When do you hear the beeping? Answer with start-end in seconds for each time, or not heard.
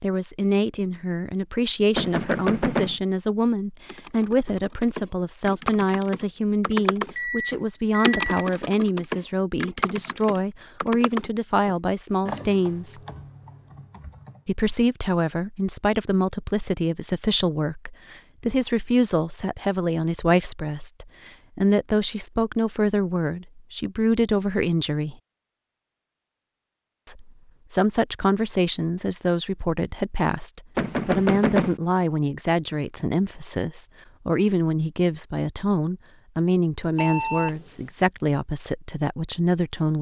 7.2-8.5, 37.0-37.6.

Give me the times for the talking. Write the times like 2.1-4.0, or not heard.
0.0-13.0, 14.4-25.1, 27.1-39.9.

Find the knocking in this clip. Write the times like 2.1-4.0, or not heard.
1.9-3.0, 30.8-31.8.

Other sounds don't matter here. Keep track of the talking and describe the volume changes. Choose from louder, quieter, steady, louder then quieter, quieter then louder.
steady.